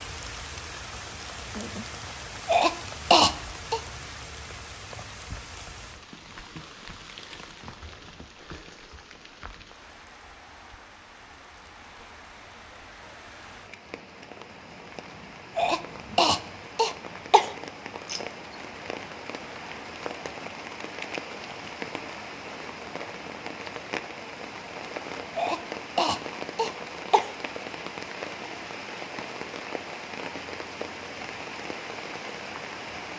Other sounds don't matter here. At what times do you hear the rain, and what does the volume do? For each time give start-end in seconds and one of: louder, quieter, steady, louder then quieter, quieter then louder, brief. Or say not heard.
0.0-33.1 quieter then louder.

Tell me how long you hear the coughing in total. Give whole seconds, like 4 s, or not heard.
5 s.